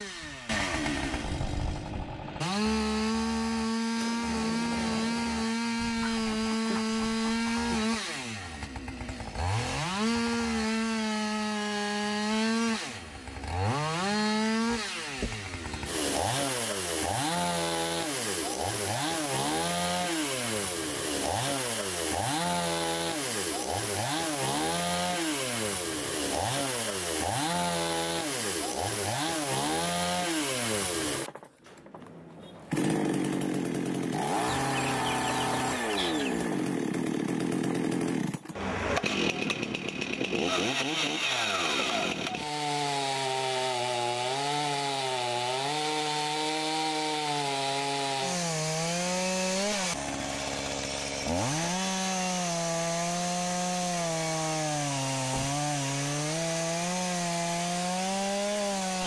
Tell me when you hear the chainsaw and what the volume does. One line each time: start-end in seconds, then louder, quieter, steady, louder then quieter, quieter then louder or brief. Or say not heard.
0.0-59.0 steady.